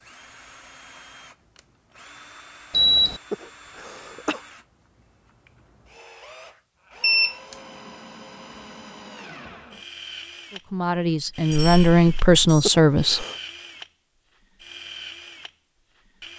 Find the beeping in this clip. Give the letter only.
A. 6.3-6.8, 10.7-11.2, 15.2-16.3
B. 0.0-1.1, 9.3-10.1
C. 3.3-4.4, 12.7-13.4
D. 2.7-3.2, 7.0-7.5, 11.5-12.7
D.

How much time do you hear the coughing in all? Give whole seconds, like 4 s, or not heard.
2 s.